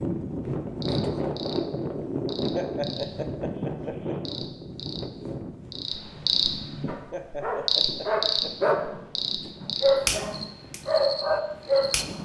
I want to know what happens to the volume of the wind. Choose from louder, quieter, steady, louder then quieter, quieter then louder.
quieter.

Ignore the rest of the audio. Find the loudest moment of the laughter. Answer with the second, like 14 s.
3 s.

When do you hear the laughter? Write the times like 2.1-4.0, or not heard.
2.5-4.3, 7.1-8.7.